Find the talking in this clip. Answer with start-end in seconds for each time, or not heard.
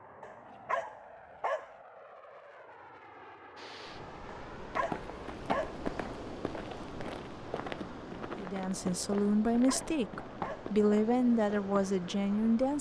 8.3-12.7.